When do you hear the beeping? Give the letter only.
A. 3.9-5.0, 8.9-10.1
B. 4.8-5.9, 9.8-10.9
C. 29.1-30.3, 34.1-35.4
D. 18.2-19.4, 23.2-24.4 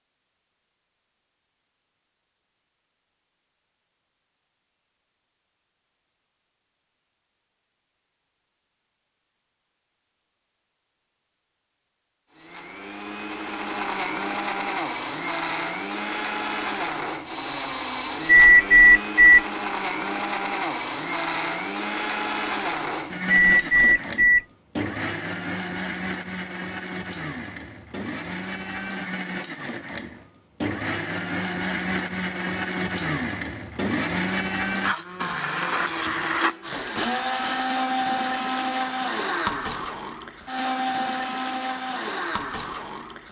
D.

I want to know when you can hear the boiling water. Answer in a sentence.
The boiling water can't be heard in this clip.